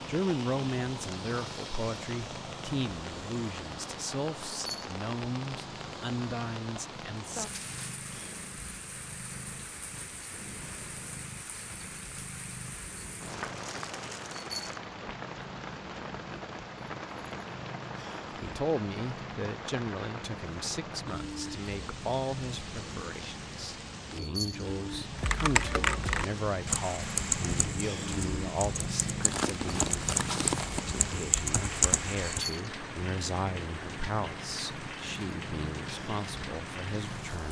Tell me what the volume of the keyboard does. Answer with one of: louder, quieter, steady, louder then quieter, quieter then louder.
quieter then louder.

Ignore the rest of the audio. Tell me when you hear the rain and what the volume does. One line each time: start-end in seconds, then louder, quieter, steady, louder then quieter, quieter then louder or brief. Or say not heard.
0.0-37.4 steady.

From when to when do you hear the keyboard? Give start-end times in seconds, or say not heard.
25.2-32.5.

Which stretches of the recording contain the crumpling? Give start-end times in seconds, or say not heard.
7.4-8.1, 13.2-14.8, 29.2-30.9.